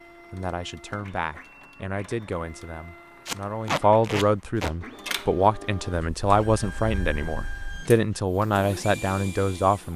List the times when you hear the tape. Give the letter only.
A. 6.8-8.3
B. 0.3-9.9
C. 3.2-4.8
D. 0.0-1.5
C.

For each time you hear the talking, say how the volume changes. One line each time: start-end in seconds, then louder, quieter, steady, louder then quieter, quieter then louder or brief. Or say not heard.
0.3-9.9 louder.